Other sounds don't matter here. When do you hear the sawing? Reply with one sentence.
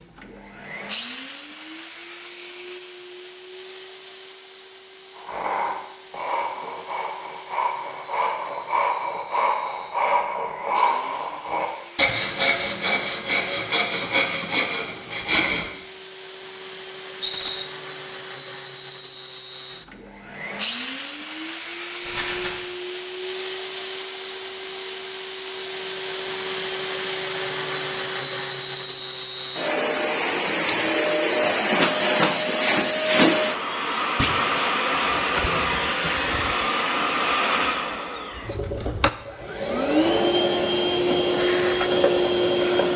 The sawing can be heard from 5.2 to 15.7 s.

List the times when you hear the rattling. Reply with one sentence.
You can hear the rattling from 17.2 to 17.6 s and from 22.0 to 22.6 s.